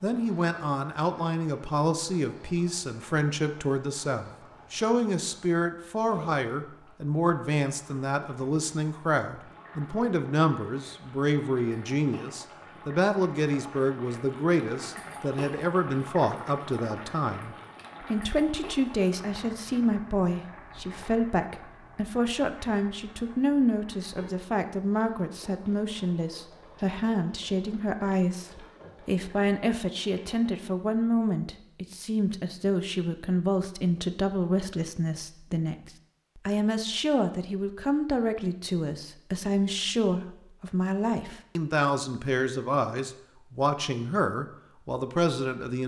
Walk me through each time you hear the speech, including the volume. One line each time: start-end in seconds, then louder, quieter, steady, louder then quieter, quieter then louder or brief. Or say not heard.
0.0-45.8 steady.